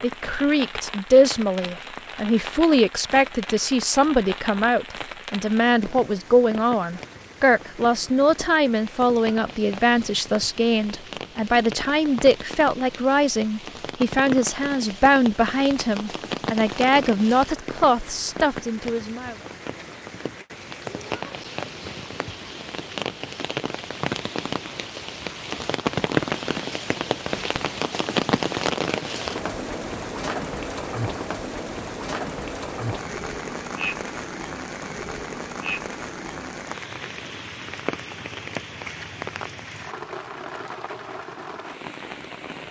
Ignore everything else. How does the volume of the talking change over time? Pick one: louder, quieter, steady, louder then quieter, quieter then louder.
steady.